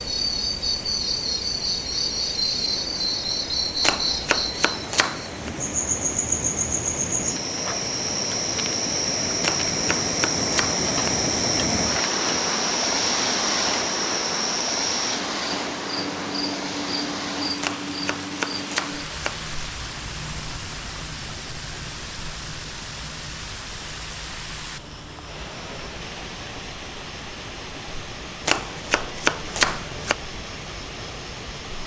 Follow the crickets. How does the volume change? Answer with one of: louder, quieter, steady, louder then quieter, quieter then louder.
quieter.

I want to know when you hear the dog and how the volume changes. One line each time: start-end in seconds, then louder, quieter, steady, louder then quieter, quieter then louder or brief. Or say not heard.
not heard.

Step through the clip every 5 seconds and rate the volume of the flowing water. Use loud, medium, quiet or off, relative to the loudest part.
medium, medium, loud, medium, medium, medium, medium.